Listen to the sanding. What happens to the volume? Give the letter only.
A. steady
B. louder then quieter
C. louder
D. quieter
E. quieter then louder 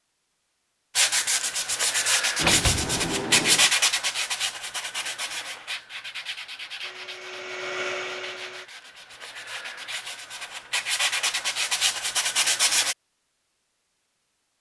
E.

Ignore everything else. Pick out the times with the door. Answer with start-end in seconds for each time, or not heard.
2.4-3.7.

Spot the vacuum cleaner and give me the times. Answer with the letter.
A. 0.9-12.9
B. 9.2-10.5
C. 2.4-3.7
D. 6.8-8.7
D.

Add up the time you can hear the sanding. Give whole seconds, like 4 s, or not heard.
12 s.